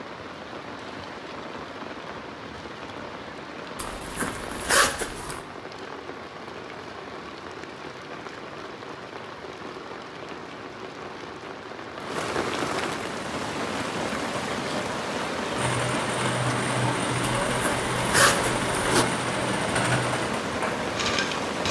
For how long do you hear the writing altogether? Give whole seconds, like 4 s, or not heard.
not heard.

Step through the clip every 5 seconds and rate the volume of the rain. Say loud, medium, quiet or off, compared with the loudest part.
medium, medium, loud, loud, loud.